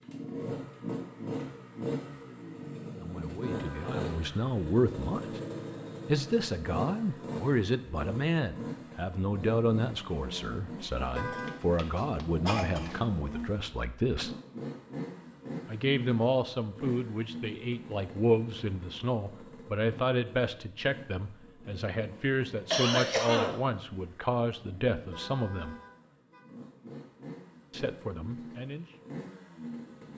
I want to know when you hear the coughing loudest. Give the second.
23 s.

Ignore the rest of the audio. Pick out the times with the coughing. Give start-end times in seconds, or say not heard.
11.3-12.9, 22.7-23.6.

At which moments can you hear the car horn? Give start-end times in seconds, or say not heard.
3.4-4.0, 11.1-11.6, 24.9-26.4.